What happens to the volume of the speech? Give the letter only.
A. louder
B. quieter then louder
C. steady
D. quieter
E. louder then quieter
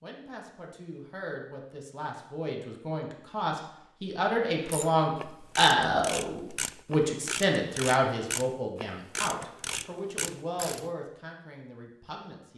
E.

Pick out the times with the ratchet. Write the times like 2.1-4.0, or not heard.
4.7-10.9.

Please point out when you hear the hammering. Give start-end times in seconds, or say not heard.
not heard.